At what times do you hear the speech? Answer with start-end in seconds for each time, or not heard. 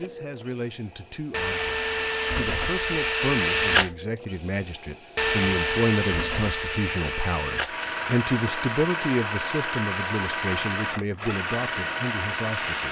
0.0-12.8.